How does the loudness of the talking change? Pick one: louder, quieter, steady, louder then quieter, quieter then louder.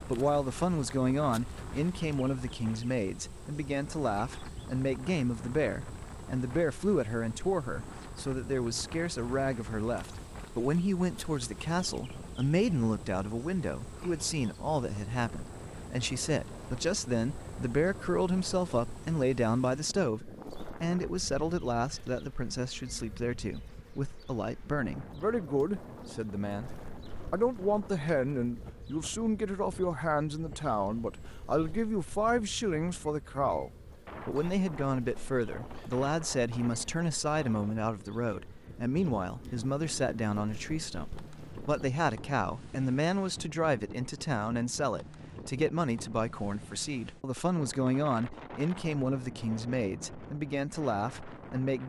steady.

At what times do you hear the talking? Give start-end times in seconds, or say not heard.
0.0-51.8.